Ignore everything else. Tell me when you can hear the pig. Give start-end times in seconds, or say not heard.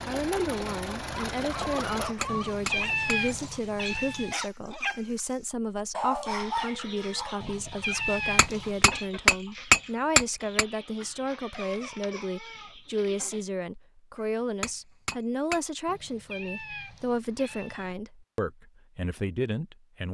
not heard.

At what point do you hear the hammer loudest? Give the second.
10 s.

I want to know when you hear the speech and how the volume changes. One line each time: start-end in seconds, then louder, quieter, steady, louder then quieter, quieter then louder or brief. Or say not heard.
0.1-20.0 steady.